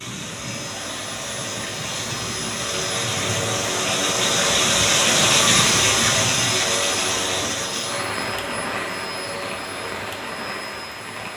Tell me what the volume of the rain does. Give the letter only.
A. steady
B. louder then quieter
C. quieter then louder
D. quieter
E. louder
B.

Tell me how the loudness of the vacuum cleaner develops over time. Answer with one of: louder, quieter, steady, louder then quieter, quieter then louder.
louder then quieter.